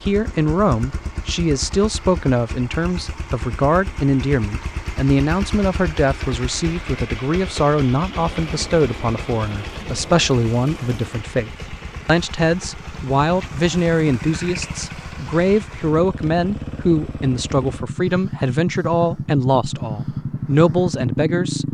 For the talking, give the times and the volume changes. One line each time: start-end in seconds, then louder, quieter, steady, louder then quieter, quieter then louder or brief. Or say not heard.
0.0-21.7 steady.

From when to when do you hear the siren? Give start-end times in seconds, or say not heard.
not heard.